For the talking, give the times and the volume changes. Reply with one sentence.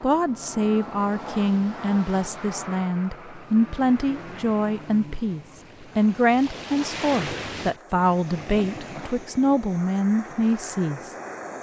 The talking can be heard from 0.0 to 11.2 s, at a steady volume.